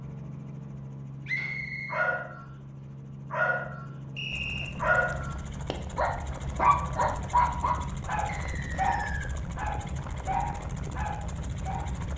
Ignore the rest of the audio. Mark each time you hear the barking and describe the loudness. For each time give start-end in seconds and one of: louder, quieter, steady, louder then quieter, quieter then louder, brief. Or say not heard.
1.4-2.4 brief
3.3-3.9 brief
4.8-11.9 louder then quieter.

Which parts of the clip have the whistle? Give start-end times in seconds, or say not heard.
1.2-2.1, 4.2-4.8, 8.2-9.3.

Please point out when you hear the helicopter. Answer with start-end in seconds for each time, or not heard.
0.0-12.1.